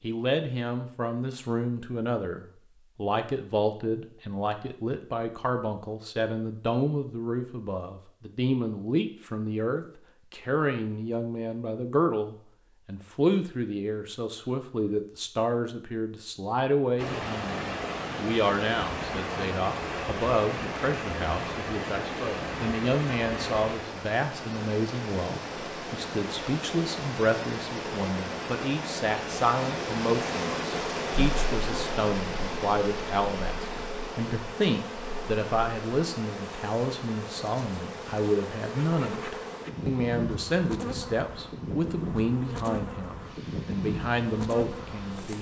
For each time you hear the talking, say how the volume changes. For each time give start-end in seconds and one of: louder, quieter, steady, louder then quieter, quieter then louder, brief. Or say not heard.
0.0-45.3 steady.